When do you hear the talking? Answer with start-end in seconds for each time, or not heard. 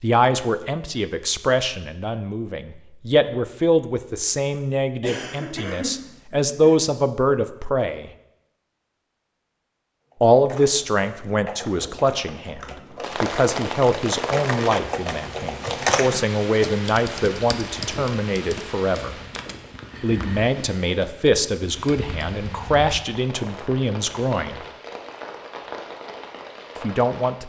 0.0-8.1, 10.2-19.1, 20.0-24.6, 26.8-27.4.